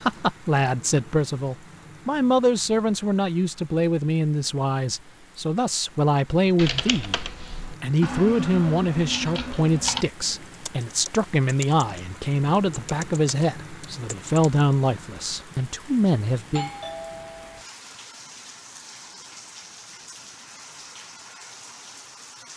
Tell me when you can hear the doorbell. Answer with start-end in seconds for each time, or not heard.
16.5-17.6.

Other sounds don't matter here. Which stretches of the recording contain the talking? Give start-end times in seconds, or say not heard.
0.0-7.2, 7.8-16.7.